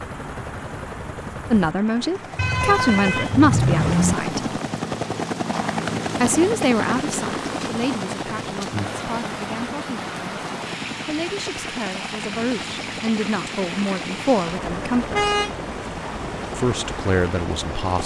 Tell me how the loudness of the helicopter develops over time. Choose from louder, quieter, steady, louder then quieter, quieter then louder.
louder then quieter.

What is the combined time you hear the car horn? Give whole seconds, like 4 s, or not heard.
2 s.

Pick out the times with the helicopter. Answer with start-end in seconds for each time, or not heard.
0.0-18.0.